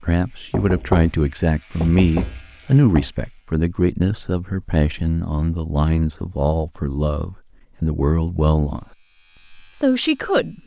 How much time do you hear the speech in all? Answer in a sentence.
You can hear the speech for 10 seconds altogether.